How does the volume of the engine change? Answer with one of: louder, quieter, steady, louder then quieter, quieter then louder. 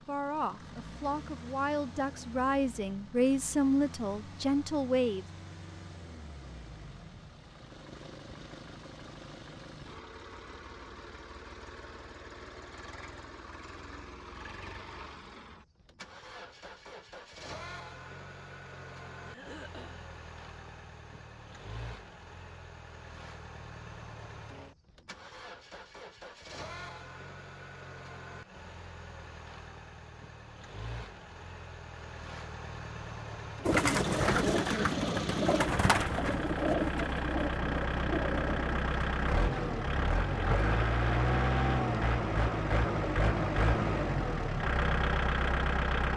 louder.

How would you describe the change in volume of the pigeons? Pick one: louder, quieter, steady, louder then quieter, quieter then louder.
quieter.